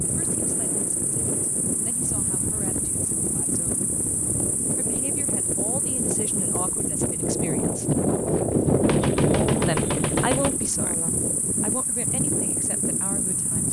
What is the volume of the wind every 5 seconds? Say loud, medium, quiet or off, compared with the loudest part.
medium, loud, medium.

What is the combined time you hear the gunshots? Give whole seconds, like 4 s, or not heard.
2 s.